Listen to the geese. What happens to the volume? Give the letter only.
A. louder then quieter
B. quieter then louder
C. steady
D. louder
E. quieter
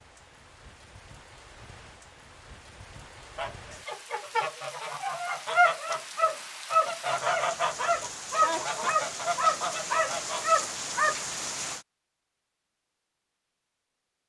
D.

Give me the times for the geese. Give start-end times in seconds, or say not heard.
3.4-11.2.